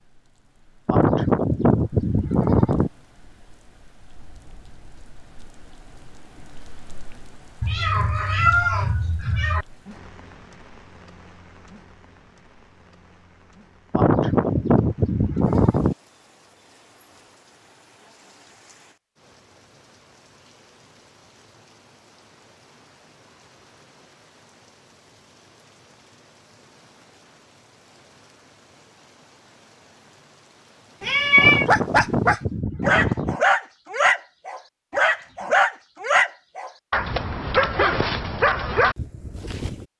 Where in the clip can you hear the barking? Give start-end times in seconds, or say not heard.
31.6-39.9.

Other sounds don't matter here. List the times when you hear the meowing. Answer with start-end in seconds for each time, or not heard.
7.6-9.7, 31.0-31.6.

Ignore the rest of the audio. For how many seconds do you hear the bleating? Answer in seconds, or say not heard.
6 s.